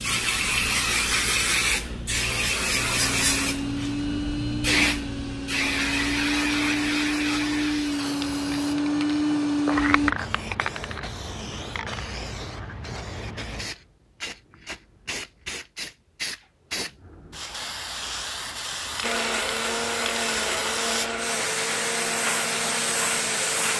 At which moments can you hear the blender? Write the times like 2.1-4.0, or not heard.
3.0-10.2, 19.0-23.7.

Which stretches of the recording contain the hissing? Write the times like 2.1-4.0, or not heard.
0.0-23.7.